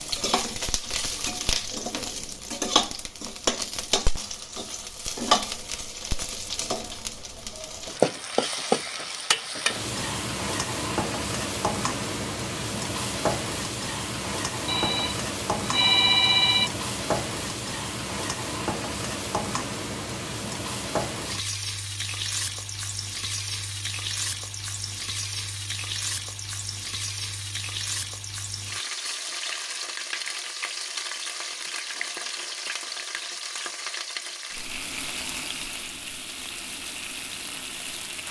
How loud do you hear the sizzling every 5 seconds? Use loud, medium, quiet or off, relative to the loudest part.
loud, loud, loud, loud, medium, medium, medium, medium.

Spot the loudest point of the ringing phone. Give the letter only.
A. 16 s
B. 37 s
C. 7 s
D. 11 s
A.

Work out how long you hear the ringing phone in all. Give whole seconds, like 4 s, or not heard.
2 s.